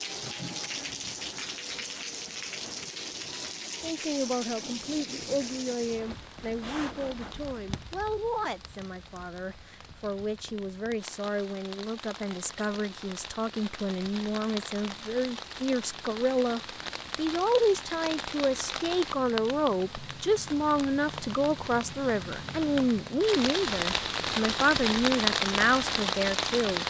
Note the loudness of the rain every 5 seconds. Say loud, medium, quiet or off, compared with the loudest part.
medium, quiet, quiet, medium, medium, loud.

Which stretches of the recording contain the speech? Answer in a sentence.
You can hear the speech from 3.8 to 26.8 s.